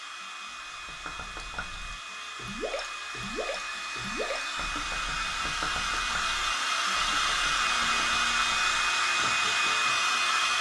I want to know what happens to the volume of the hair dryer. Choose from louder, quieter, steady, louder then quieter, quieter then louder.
louder.